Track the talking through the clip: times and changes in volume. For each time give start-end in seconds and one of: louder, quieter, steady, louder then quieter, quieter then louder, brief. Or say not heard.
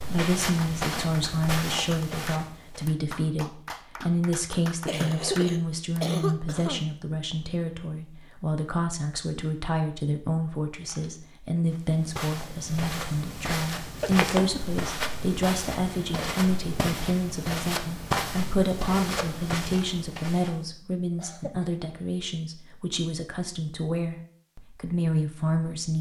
0.1-25.9 steady.